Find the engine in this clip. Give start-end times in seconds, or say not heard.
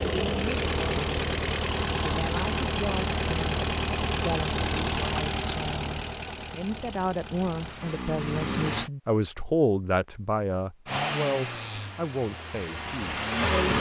0.0-8.9, 10.8-13.7.